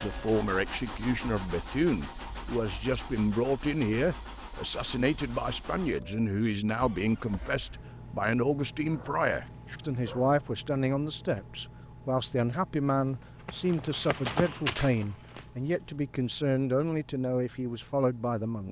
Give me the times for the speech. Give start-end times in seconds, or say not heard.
0.0-18.6.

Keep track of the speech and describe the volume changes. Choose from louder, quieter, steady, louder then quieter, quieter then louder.
steady.